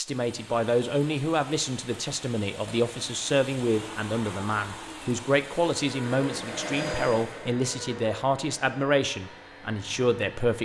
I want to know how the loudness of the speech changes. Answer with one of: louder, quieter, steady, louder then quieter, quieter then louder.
steady.